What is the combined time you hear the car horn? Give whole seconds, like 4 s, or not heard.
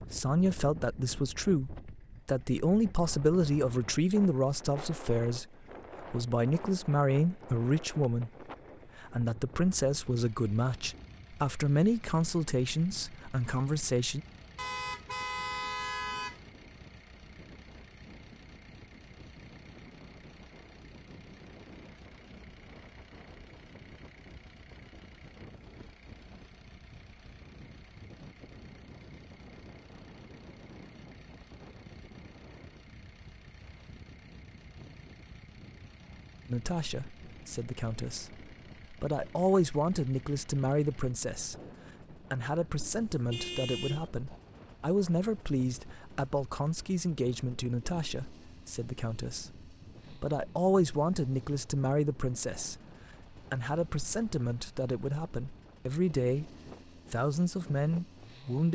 3 s.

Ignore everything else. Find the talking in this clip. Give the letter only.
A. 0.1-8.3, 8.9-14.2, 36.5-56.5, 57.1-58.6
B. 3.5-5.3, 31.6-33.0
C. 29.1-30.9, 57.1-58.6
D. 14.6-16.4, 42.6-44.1
A.